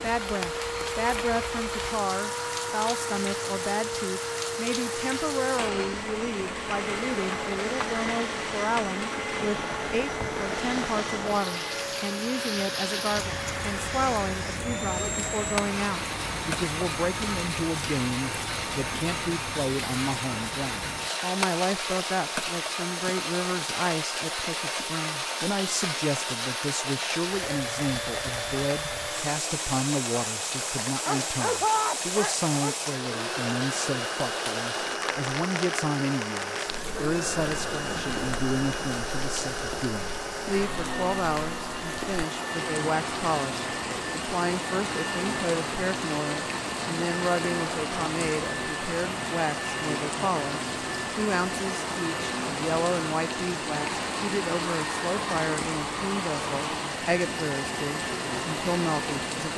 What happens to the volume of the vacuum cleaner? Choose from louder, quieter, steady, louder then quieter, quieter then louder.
steady.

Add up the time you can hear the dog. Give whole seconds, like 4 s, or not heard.
2 s.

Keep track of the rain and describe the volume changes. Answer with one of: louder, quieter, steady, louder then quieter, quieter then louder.
steady.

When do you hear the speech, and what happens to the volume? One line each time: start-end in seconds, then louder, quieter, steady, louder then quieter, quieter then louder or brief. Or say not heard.
0.0-59.4 steady.